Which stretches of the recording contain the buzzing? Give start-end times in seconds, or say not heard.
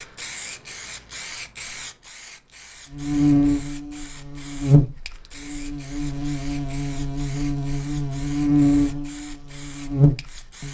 2.9-10.6.